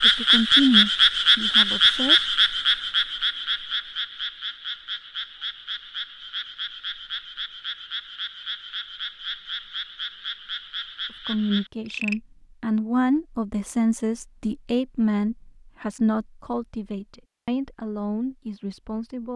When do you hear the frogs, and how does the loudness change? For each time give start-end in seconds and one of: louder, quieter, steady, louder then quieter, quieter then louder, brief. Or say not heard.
0.0-12.2 quieter.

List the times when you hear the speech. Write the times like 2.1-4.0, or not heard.
0.0-2.4, 11.1-19.3.